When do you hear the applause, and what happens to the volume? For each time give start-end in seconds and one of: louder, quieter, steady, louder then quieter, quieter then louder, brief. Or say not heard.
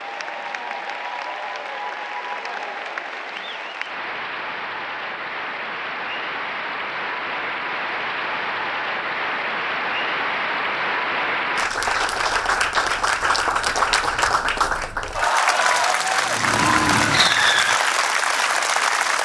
0.0-19.2 louder.